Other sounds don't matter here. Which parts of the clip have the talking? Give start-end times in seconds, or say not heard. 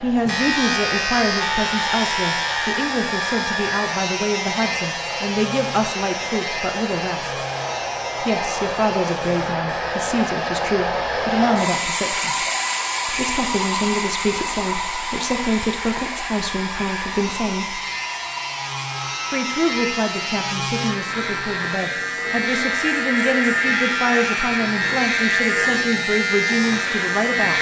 0.0-7.4, 8.2-12.4, 13.1-17.8, 19.3-27.5.